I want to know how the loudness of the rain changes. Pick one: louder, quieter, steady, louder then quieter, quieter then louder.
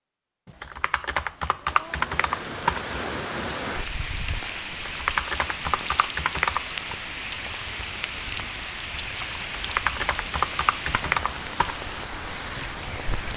steady.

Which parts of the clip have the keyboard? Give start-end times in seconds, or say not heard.
0.5-2.9, 4.7-7.0, 9.4-11.8.